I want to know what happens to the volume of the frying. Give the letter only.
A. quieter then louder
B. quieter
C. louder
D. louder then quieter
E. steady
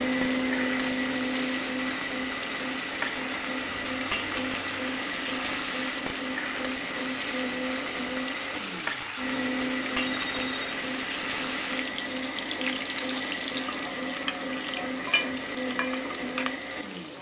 E.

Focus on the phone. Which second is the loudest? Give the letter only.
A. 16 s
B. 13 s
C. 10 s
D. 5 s
C.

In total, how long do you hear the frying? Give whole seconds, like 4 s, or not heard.
17 s.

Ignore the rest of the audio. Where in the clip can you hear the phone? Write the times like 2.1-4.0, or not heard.
3.6-5.0, 10.0-10.8.